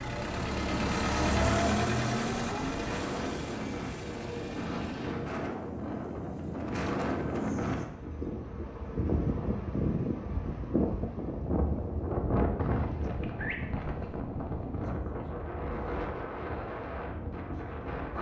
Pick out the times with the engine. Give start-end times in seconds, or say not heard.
0.0-5.3.